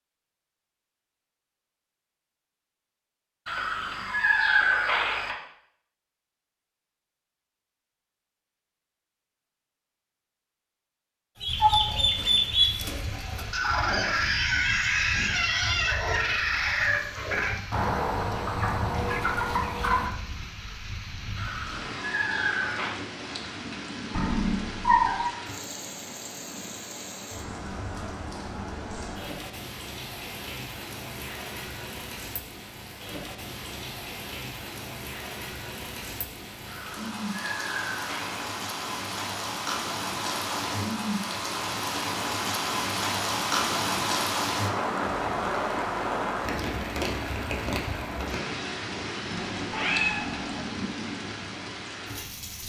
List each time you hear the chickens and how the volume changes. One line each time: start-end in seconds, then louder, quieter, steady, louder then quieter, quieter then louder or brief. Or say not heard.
11.4-20.1 steady.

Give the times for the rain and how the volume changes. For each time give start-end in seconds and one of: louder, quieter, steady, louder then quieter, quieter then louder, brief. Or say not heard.
11.4-52.6 louder.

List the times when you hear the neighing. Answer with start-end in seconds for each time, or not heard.
3.5-5.3, 21.4-23.0, 36.6-38.5.